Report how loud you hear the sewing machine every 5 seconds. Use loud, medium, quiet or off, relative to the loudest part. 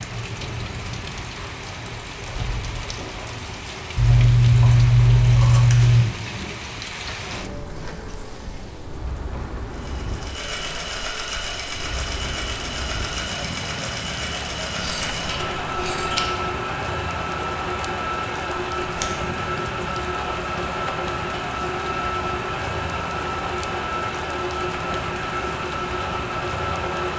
quiet, quiet, loud, loud, loud, loud.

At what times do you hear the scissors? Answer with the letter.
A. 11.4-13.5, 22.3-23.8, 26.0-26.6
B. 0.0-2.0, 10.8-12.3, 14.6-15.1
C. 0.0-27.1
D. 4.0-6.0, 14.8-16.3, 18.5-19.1
D.